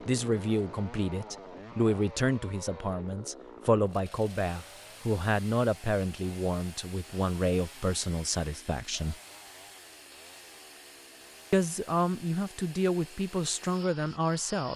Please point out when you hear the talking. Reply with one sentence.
The talking can be heard from 0.0 to 9.2 s and from 11.5 to 14.7 s.